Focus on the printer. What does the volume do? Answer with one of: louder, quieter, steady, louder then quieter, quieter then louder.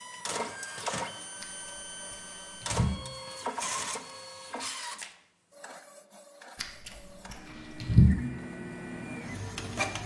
quieter then louder.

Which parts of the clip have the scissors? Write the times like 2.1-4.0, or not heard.
1.4-3.0, 6.6-8.2.